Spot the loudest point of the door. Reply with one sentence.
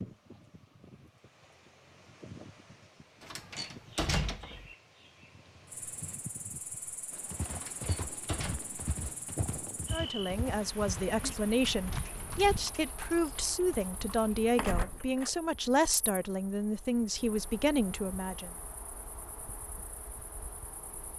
The volume of the door peaks at 4 seconds.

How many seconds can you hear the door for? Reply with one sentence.
The door can be heard for 3 seconds in total.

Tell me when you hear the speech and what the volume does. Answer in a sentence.
You can hear the speech from 9.9 to 18.5 s, at a steady volume.